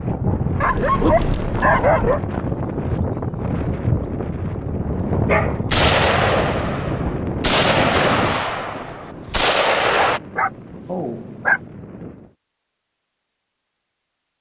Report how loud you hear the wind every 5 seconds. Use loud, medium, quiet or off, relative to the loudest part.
loud, loud, quiet.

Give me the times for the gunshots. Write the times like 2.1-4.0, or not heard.
5.7-10.2.